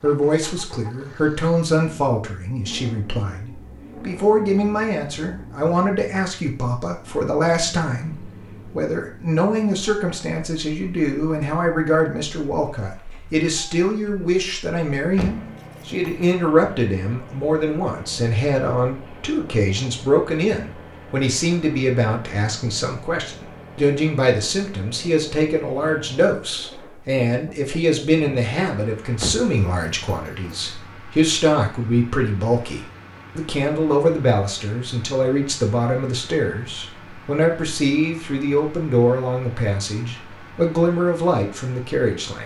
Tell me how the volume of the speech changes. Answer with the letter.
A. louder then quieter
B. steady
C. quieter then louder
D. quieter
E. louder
B.